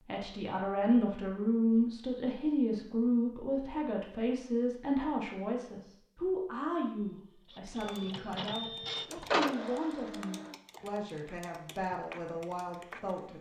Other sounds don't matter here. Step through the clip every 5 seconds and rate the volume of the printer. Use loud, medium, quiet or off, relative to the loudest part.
off, loud, quiet.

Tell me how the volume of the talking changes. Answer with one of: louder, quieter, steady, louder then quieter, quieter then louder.
quieter.